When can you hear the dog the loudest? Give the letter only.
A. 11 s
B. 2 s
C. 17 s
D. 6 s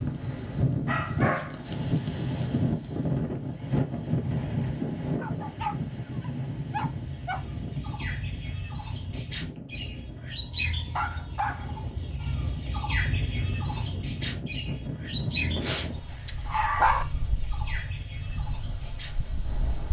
C.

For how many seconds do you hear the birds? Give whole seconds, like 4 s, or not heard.
13 s.